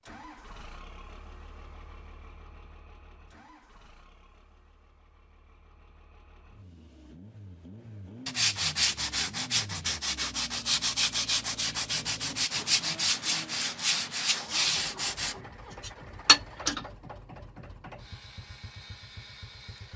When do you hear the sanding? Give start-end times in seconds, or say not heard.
8.2-16.9.